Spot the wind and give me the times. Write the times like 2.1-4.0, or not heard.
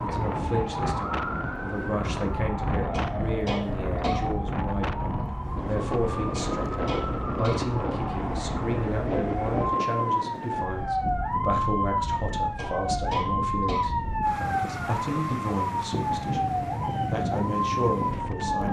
0.0-18.6.